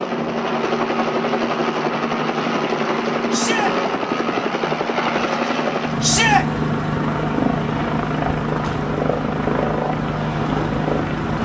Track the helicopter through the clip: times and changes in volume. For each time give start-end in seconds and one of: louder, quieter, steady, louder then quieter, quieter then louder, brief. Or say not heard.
0.0-11.4 steady.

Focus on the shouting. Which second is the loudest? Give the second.
6 s.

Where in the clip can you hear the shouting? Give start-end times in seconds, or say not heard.
3.3-3.8, 6.0-6.5.